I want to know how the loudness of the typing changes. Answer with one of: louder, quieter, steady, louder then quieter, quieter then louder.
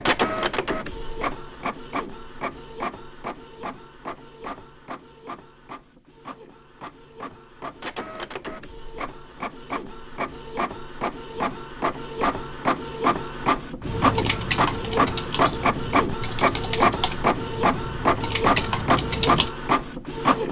quieter then louder.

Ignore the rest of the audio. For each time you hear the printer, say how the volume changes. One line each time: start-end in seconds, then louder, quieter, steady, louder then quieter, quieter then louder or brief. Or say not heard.
0.0-20.4 quieter then louder.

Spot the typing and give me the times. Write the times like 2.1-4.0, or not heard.
13.8-19.5.